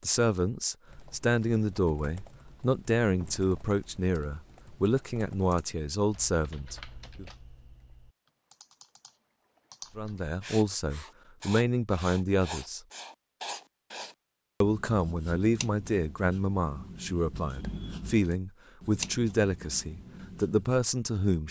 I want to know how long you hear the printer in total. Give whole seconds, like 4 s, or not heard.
not heard.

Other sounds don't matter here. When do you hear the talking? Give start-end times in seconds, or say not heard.
0.0-7.2, 9.9-12.8, 14.6-21.4.